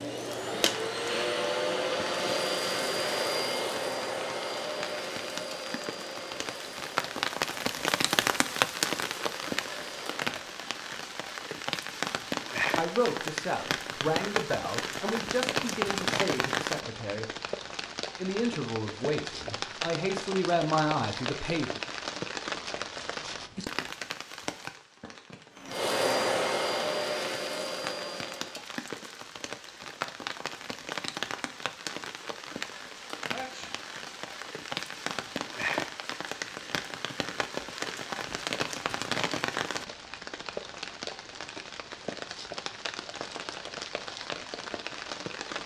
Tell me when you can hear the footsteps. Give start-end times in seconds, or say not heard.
not heard.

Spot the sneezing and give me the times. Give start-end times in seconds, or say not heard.
33.3-33.8.